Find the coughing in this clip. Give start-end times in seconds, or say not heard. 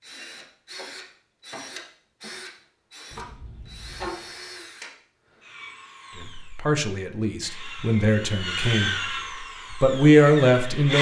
not heard.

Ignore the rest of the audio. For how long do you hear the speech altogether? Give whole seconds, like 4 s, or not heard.
4 s.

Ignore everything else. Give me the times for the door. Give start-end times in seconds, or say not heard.
3.1-4.3.